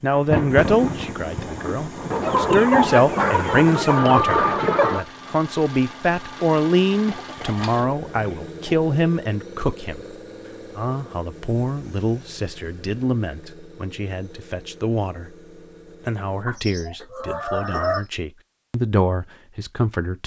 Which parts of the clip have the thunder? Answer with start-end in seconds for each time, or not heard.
0.1-2.8.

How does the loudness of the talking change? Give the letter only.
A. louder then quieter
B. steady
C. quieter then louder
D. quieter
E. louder
D.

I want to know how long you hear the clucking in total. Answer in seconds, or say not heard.
7 s.